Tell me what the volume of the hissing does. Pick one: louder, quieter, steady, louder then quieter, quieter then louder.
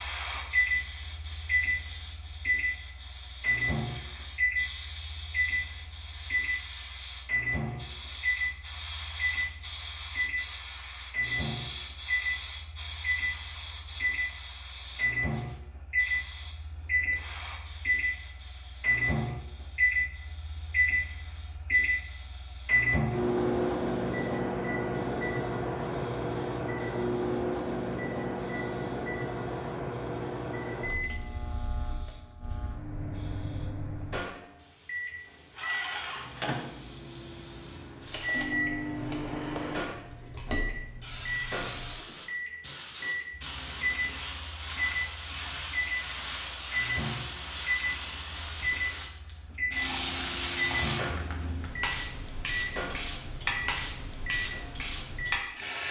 quieter then louder.